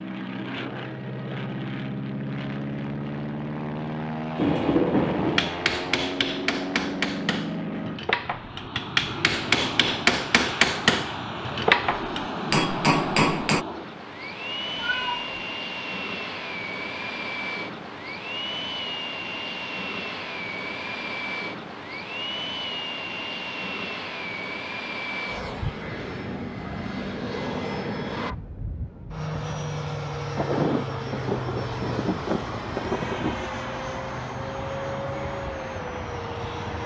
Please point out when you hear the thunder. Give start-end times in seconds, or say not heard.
4.3-5.5, 30.4-33.5.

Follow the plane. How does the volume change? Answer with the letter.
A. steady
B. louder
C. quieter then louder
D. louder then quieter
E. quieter
A.